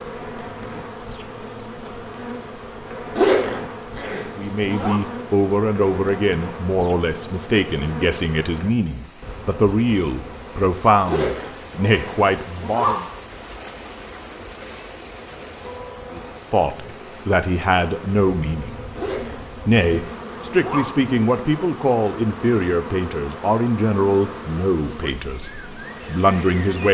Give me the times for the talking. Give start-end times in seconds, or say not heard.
4.3-13.1, 16.1-18.7, 19.6-26.8.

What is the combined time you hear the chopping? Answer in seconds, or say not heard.
not heard.